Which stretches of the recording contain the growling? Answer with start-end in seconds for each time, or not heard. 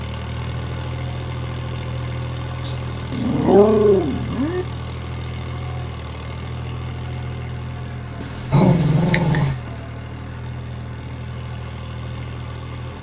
2.6-4.7, 8.2-9.6.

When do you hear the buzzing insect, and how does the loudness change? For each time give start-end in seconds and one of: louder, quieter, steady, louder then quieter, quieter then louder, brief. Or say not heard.
not heard.